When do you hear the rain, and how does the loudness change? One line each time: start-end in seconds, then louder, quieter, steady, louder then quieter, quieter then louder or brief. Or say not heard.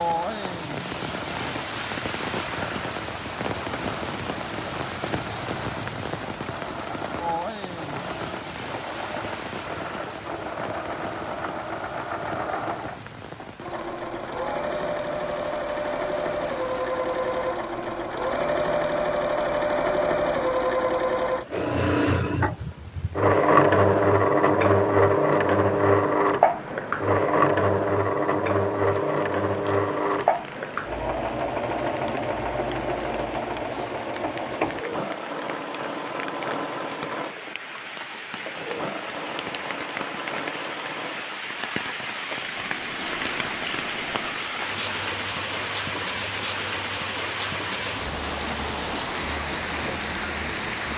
0.0-50.9 quieter then louder.